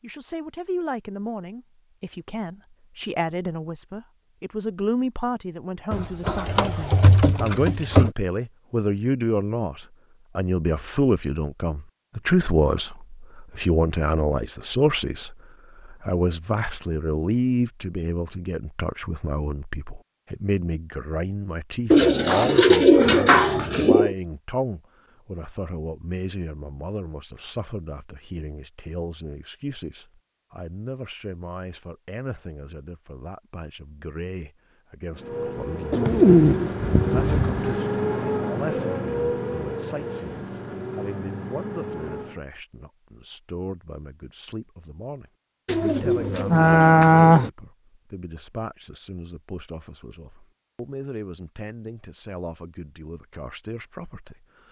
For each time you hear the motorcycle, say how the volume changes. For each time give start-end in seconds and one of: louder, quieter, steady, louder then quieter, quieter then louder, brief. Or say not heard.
35.1-42.4 louder then quieter.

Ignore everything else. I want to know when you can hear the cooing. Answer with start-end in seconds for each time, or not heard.
5.9-8.1, 21.9-24.1, 35.9-37.8, 45.6-47.5.